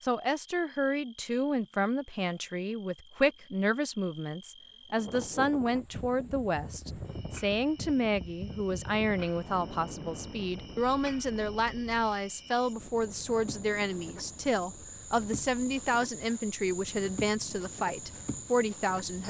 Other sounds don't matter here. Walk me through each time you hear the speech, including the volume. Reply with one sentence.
You can hear the speech from 0.0 to 19.2 s, at a steady volume.